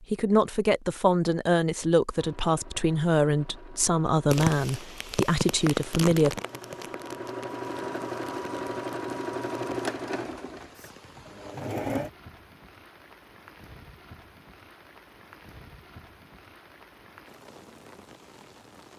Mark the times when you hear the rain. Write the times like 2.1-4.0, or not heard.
4.3-18.9.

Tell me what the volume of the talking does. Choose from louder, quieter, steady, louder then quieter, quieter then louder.
steady.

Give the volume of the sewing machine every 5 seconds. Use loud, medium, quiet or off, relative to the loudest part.
quiet, loud, loud, off.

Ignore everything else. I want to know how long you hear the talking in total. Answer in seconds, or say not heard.
6 s.